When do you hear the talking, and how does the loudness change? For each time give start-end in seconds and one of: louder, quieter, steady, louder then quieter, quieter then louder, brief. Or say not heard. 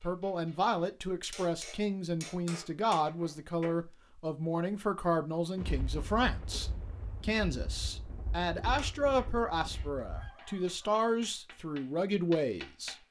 0.0-12.9 steady.